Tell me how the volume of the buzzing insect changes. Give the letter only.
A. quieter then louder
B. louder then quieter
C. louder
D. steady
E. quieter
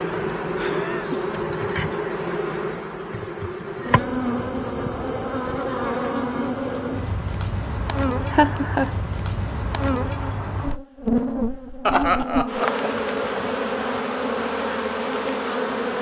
D.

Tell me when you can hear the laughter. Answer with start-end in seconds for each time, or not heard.
0.6-1.2, 8.3-8.9, 11.8-12.8.